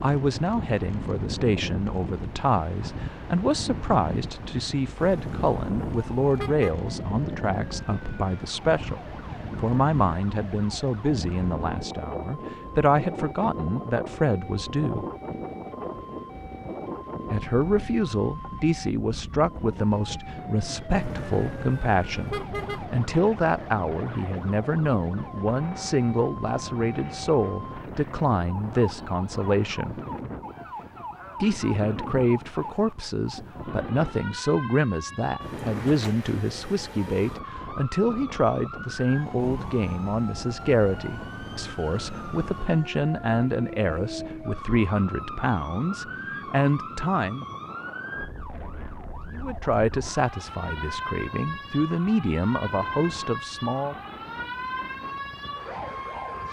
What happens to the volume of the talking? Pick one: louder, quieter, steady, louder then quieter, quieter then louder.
steady.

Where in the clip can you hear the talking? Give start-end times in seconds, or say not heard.
0.0-9.0, 9.6-15.1, 17.3-30.0, 31.4-47.5, 49.3-54.0.